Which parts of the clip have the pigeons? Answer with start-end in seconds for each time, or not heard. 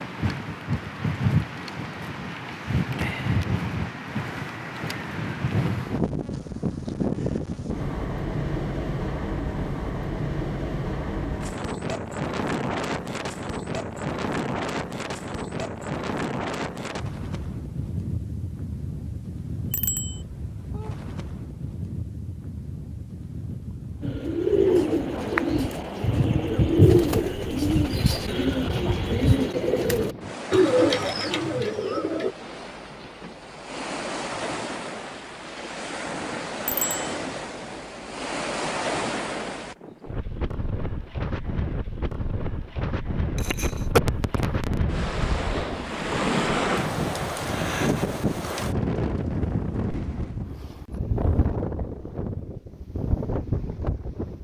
24.0-32.4.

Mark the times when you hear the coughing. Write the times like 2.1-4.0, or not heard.
43.4-44.9.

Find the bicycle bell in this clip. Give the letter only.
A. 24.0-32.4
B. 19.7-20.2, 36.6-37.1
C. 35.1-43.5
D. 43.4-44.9
B.